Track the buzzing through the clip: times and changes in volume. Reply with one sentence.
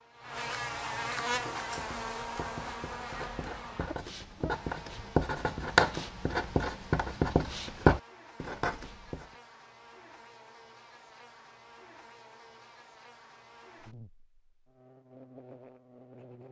The buzzing can be heard from 0.0 to 16.4 s, getting quieter.